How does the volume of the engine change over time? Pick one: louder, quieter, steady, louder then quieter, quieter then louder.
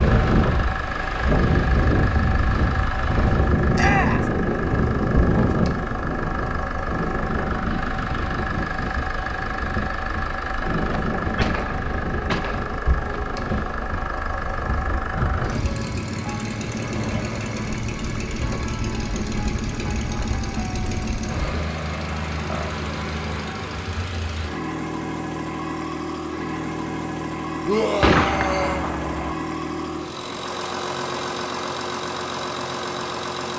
steady.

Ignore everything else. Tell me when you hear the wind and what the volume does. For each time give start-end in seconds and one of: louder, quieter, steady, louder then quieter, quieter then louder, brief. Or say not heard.
0.0-21.6 quieter.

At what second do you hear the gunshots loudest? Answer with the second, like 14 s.
28 s.